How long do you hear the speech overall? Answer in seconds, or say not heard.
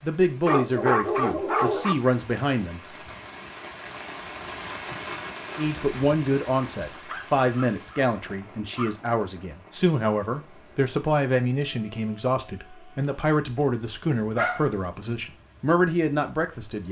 14 s.